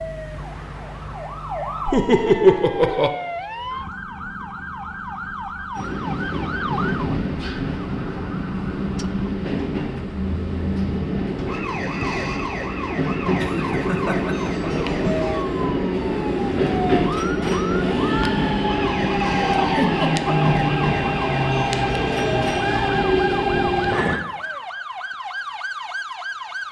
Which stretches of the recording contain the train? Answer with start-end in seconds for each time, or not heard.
5.8-24.2.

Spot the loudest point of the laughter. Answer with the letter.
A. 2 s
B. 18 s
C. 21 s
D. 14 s
A.